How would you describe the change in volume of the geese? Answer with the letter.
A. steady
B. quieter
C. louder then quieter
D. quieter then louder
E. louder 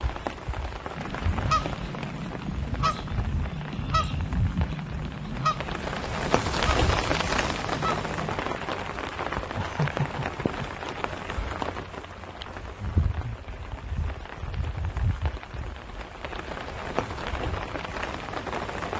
A.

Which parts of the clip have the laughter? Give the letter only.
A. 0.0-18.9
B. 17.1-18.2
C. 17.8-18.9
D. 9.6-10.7
D.